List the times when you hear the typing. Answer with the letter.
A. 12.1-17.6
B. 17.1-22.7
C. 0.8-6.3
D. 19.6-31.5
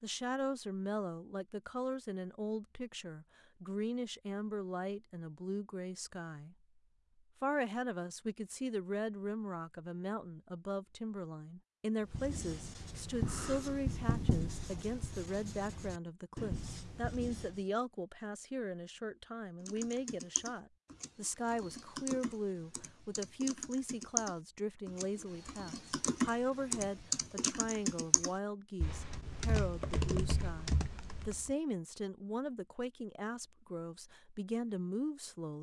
D.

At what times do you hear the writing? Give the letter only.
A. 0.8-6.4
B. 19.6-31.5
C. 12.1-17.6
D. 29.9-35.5
C.